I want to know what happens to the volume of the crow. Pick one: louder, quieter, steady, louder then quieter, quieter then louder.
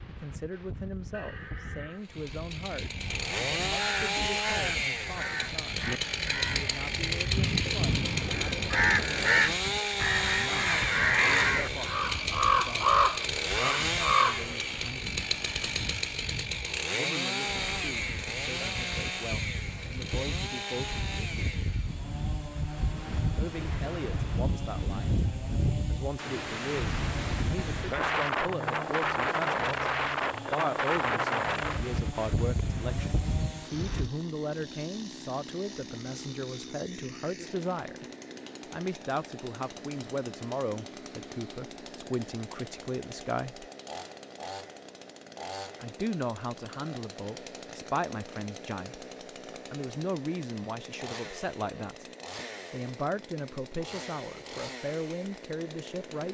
louder.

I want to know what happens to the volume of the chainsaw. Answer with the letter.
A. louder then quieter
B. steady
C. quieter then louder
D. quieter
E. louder
D.